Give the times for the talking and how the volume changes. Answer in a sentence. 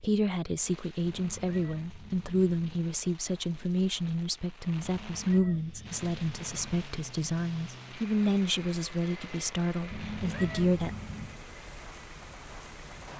The talking can be heard from 0.0 to 10.9 s, at a steady volume.